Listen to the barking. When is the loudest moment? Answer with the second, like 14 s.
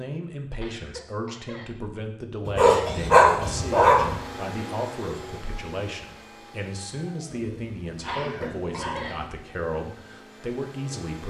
3 s.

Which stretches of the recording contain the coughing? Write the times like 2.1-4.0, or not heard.
0.5-1.8, 8.0-9.2.